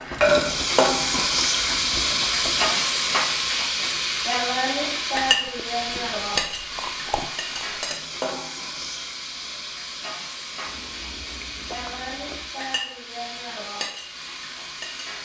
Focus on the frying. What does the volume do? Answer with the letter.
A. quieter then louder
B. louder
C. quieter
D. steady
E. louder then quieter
C.